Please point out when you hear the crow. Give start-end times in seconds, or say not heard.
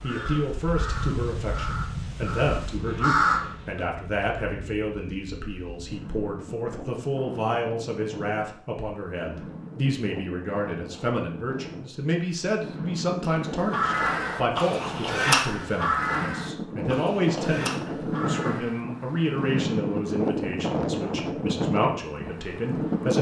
0.0-3.5, 13.4-18.9.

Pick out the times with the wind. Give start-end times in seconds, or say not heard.
0.0-23.1.